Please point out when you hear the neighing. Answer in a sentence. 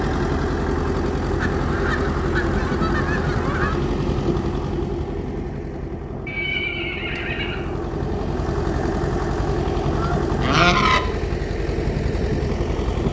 You can hear the neighing from 6.2 to 7.6 s.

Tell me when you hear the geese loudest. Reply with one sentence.
The loudest moment of the geese is at 11 seconds.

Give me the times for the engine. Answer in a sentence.
The engine can be heard from 0.0 to 13.0 s.